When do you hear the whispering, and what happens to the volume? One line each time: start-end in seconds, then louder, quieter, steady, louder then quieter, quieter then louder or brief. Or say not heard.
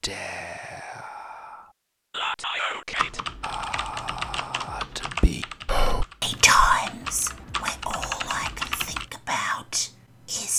0.0-10.5 louder then quieter.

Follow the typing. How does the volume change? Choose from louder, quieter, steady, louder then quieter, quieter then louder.
quieter then louder.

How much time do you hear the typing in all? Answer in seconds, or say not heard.
6 s.